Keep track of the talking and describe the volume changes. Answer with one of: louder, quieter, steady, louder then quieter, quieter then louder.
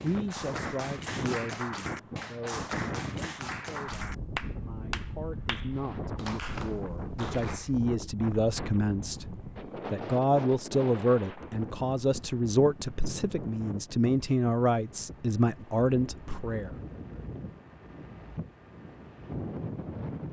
louder.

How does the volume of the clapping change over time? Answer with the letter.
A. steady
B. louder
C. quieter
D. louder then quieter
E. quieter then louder
A.